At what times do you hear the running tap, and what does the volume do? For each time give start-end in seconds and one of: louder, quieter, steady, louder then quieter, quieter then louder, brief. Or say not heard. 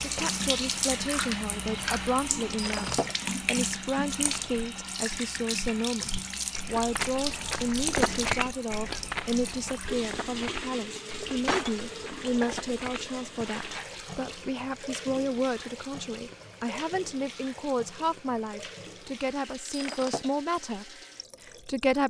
0.0-22.0 quieter.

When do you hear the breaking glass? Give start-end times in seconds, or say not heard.
2.5-3.1, 11.4-11.8, 19.6-20.3.